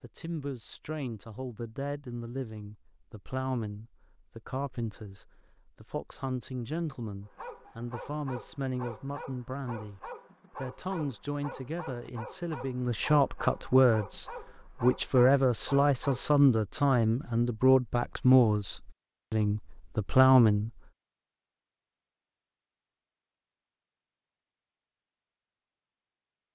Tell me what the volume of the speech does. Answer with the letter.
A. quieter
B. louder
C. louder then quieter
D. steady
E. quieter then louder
B.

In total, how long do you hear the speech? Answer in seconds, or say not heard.
21 s.